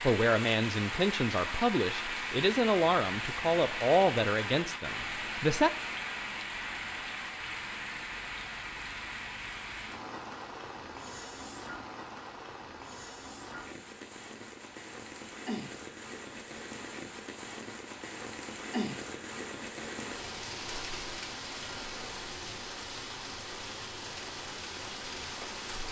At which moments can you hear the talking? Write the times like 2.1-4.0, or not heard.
0.0-5.7.